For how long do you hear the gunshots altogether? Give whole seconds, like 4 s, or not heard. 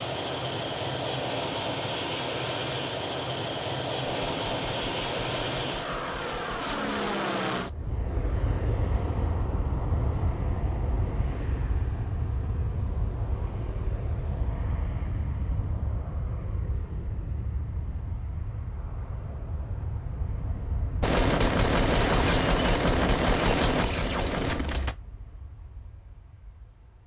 7 s.